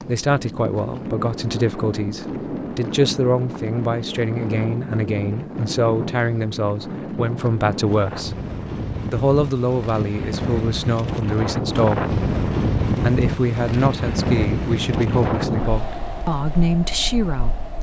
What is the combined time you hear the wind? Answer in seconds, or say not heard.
18 s.